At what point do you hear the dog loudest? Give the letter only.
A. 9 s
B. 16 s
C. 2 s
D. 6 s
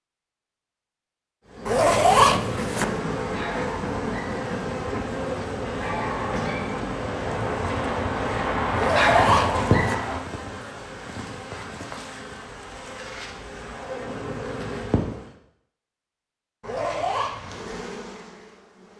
A.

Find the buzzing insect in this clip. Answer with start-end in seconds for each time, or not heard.
1.4-15.3, 17.1-18.9.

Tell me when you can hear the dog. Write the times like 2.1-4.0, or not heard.
2.9-10.2.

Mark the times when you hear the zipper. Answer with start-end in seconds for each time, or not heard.
1.6-2.9, 8.8-9.9, 16.6-17.4.